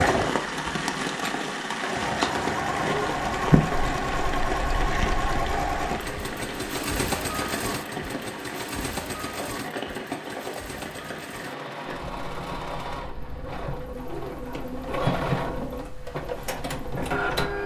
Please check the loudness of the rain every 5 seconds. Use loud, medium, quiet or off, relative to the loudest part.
loud, medium, medium, quiet.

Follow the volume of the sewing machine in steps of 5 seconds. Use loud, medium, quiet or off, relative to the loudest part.
loud, loud, medium, loud.